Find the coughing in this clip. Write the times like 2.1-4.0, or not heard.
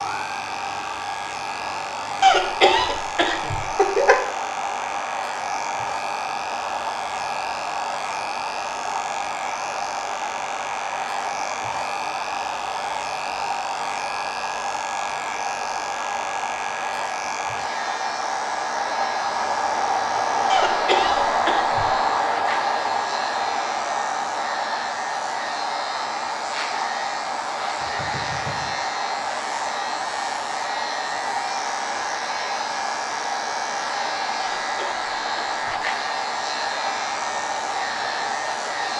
2.2-4.2, 20.4-21.9, 34.6-35.9.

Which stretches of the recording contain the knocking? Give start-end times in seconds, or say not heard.
27.8-28.8.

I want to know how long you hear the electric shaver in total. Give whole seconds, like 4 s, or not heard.
39 s.